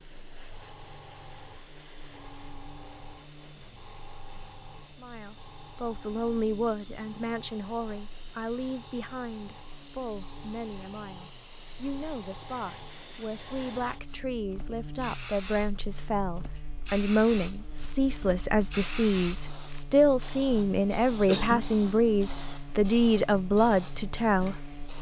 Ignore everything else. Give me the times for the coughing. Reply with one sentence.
The coughing can be heard from 21.1 to 21.6 s.